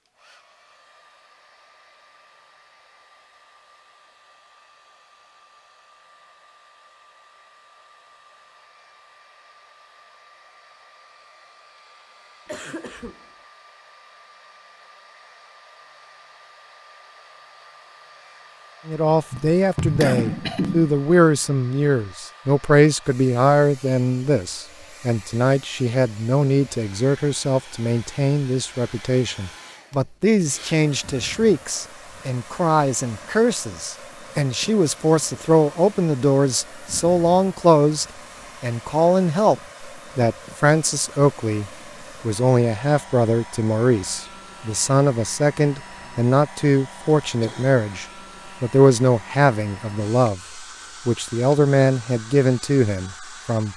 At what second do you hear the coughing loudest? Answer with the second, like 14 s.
20 s.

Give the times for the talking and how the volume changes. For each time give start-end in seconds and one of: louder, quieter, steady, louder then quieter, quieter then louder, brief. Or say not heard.
18.9-53.7 steady.